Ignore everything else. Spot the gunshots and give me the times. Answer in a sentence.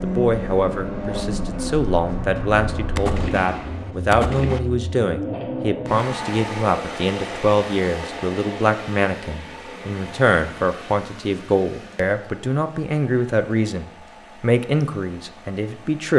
The gunshots can be heard from 3.0 to 4.6 s.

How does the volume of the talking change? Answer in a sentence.
The volume of the talking stays about the same.